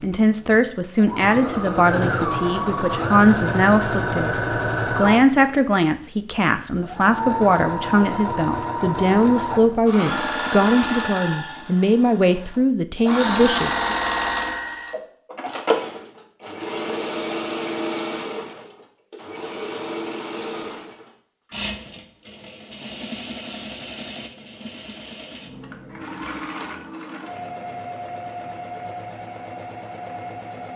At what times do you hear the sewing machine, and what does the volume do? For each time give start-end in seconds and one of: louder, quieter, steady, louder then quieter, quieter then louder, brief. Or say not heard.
0.0-5.8 louder
6.7-30.7 quieter.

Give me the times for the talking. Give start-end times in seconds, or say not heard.
0.0-13.9.